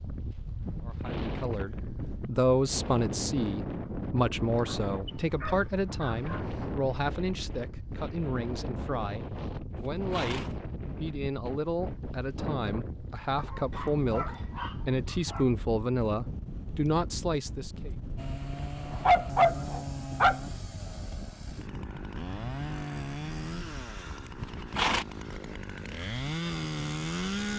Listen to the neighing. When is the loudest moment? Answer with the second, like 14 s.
25 s.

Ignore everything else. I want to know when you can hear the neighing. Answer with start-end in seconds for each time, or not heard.
9.8-10.6, 24.4-25.1.